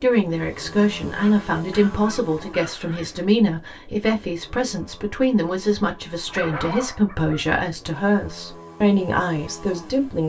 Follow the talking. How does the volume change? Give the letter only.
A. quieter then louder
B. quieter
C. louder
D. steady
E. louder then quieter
D.